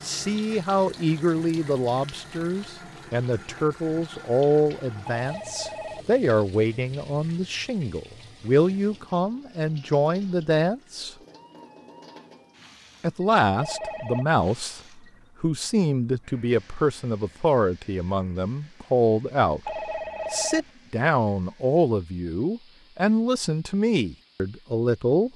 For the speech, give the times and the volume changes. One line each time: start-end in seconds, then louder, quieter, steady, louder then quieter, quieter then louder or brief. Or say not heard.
0.0-11.2 steady
13.0-25.3 steady.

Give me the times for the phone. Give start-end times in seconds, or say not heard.
5.1-6.1, 13.6-14.2, 19.6-20.7.